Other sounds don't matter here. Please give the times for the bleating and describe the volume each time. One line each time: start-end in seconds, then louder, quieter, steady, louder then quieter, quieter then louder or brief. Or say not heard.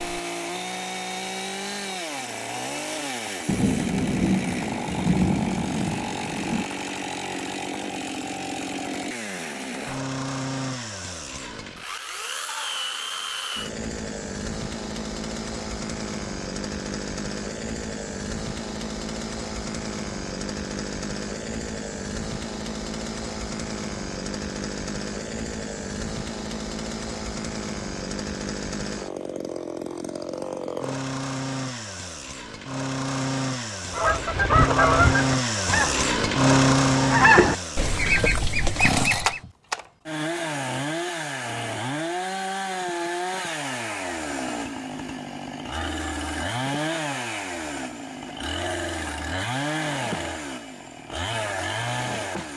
not heard.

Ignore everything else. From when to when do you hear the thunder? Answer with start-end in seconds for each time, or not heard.
3.5-6.7.